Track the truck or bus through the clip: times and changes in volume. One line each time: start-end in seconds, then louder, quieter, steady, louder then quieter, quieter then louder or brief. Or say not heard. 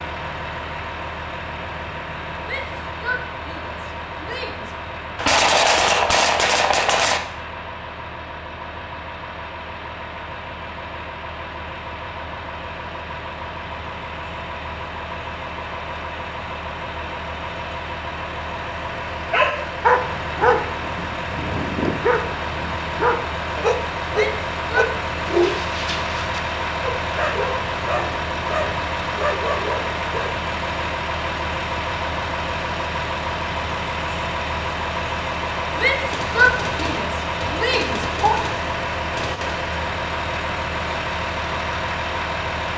0.0-42.7 louder.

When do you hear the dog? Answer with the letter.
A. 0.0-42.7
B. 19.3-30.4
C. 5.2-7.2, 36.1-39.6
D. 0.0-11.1
B.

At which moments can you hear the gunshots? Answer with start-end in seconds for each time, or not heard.
5.2-7.2, 36.1-39.6.